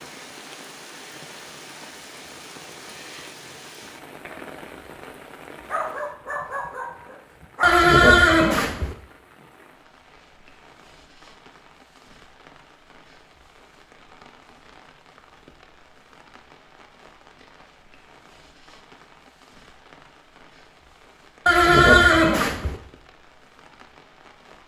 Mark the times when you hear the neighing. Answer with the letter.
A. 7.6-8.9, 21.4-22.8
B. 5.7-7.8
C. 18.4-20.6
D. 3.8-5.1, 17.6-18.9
A.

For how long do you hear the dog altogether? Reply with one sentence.
You can hear the dog for 2 seconds altogether.